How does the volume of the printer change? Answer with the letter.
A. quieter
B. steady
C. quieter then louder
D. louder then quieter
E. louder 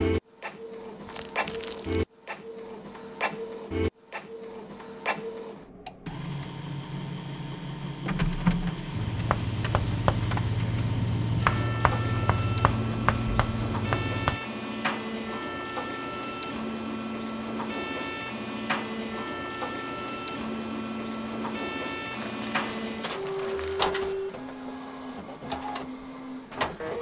B.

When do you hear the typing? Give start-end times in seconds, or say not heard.
not heard.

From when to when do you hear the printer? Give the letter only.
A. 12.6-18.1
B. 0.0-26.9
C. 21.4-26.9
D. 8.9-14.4
B.